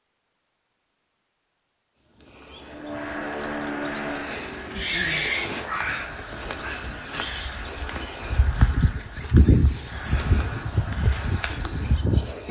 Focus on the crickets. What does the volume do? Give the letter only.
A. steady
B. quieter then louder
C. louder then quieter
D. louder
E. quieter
D.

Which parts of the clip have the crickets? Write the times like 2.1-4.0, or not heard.
2.1-12.4.